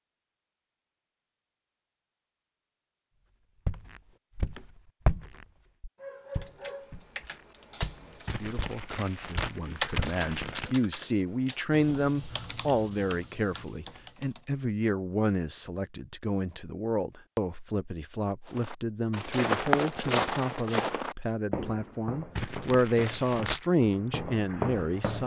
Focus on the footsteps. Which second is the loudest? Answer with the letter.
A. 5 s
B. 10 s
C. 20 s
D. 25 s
C.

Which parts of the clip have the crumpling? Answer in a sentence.
You can hear the crumpling from 8.2 to 10.8 s and from 22.4 to 23.6 s.